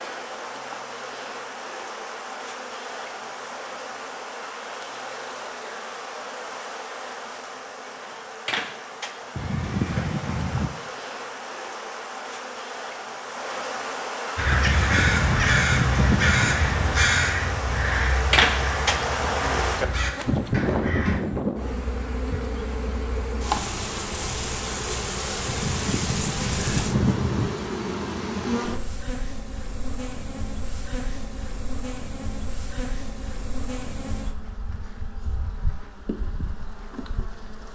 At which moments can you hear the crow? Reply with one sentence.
You can hear the crow from 14.3 to 21.2 s.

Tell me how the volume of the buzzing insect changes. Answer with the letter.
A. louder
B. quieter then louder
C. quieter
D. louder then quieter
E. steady
D.